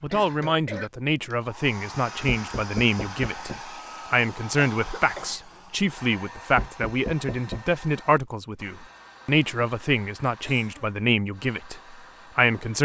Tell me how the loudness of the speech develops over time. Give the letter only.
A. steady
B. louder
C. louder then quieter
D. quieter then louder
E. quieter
A.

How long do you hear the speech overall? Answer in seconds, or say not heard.
13 s.